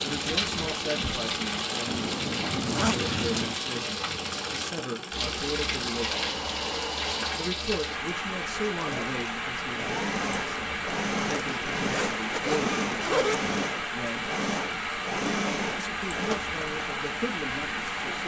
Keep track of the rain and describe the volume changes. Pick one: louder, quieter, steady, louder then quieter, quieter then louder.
steady.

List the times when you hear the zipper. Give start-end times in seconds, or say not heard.
1.9-3.5, 11.2-13.5.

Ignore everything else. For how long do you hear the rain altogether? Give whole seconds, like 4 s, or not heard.
18 s.